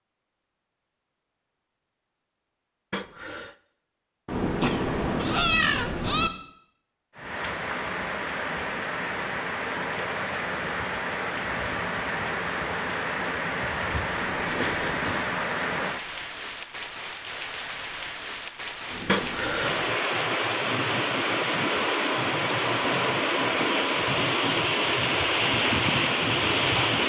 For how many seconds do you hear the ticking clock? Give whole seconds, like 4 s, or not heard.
not heard.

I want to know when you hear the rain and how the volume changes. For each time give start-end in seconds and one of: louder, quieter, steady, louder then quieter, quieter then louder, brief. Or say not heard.
7.2-27.0 louder.